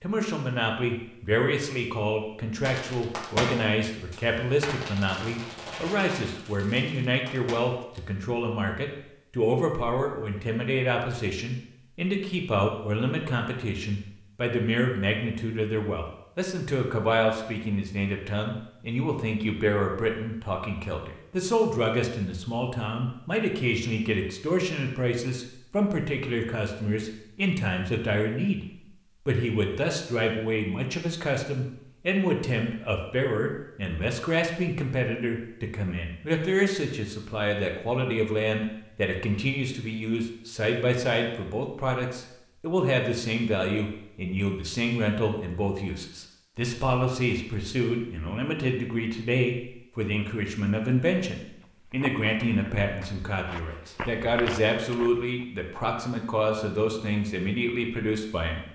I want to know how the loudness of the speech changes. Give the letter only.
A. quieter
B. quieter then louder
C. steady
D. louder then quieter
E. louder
C.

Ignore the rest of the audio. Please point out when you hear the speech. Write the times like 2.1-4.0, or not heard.
0.0-58.6.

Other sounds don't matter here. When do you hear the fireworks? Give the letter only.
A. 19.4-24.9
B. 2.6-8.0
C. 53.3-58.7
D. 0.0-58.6
B.